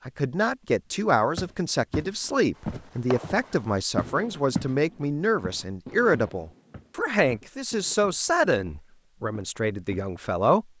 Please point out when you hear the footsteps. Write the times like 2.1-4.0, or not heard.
1.4-4.8, 5.4-10.2.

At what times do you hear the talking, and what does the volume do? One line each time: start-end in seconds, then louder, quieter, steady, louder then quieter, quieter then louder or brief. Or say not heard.
0.1-10.7 steady.